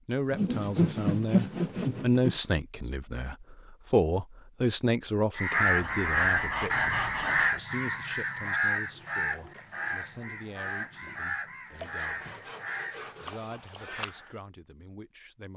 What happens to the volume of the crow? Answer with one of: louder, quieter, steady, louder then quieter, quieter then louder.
quieter.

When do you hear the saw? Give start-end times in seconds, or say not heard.
0.3-2.4, 5.8-7.5, 11.8-13.5.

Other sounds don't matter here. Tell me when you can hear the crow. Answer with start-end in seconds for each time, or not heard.
5.3-14.3.